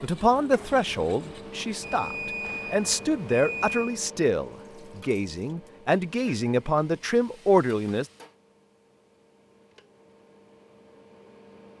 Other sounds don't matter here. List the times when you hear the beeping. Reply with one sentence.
The beeping can be heard from 1.8 to 4.0 s.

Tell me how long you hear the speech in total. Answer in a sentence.
You can hear the speech for 8 seconds altogether.